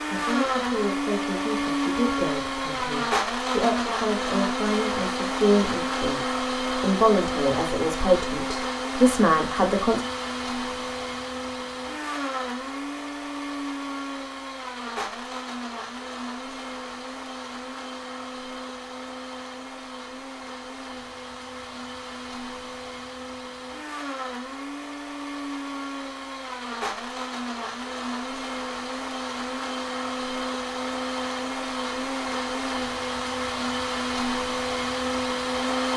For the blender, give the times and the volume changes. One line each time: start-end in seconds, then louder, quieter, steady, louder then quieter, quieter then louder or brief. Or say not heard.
0.0-35.9 quieter then louder.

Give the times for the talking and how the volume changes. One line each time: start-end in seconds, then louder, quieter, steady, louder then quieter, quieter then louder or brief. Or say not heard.
0.1-10.0 louder.